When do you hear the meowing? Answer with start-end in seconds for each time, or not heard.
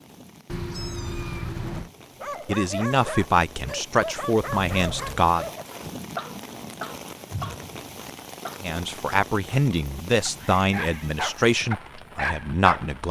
0.5-1.9, 4.5-5.3, 10.3-11.2.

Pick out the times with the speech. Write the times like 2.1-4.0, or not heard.
2.5-5.5, 8.6-13.0.